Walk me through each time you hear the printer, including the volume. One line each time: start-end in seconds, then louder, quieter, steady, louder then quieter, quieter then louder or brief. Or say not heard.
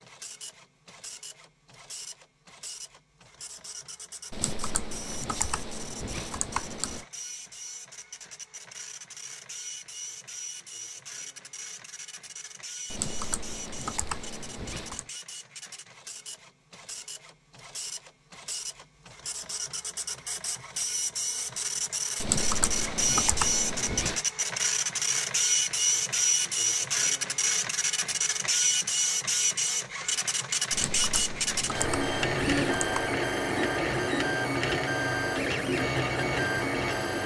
0.0-37.2 louder.